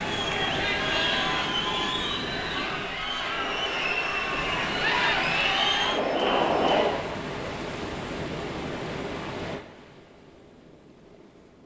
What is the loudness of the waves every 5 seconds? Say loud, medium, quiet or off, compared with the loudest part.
loud, loud, quiet.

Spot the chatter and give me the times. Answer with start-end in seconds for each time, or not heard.
0.0-7.0.